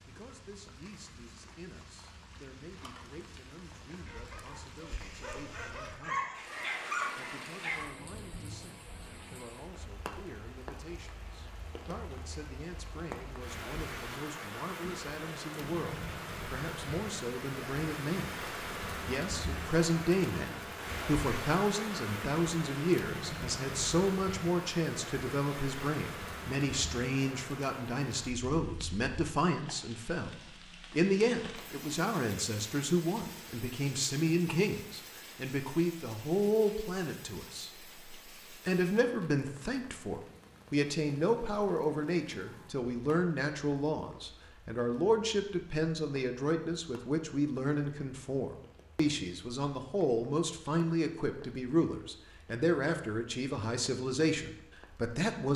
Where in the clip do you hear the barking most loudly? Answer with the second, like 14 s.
7 s.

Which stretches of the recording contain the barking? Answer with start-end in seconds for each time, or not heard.
4.0-7.9.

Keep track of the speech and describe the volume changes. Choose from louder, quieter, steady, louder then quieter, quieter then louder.
louder.